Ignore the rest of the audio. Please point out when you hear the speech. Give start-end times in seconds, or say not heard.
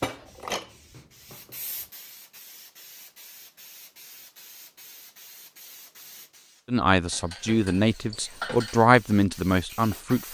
6.7-10.2.